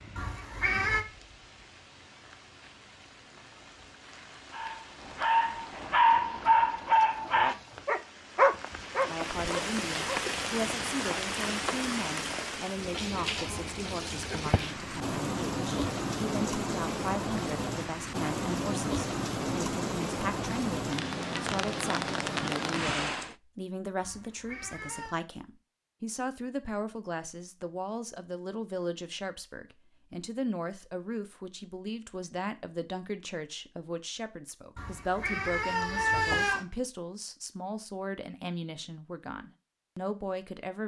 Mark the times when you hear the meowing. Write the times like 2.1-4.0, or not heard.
0.1-1.1, 24.0-25.2, 34.8-36.6.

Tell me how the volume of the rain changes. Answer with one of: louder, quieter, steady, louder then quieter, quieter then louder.
louder.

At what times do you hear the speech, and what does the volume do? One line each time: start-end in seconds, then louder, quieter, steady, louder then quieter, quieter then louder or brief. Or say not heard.
9.1-40.8 steady.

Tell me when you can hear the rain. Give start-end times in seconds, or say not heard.
0.0-23.4.